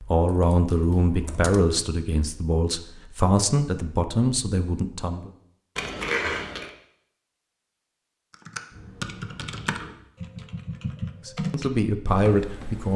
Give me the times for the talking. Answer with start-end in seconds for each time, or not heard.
0.0-5.3, 11.2-12.9.